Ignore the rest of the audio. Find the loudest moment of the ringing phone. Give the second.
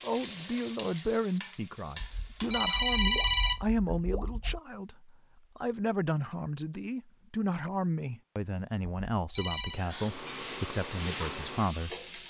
3 s.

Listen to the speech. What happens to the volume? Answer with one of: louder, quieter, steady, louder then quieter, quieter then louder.
steady.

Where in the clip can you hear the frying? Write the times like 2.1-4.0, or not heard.
0.0-3.0, 9.7-12.2.